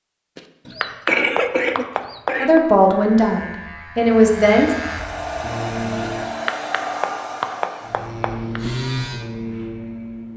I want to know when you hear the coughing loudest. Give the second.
1 s.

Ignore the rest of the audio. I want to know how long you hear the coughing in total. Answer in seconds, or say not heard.
2 s.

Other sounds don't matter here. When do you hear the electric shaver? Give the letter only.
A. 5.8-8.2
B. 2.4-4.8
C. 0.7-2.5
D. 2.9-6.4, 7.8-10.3
D.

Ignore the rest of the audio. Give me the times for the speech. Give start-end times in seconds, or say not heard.
2.4-4.8.